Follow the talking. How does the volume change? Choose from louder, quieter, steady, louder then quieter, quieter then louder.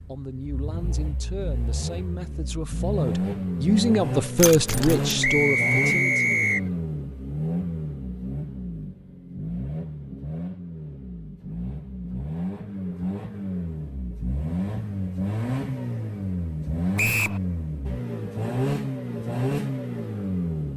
louder then quieter.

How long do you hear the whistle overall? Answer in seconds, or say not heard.
2 s.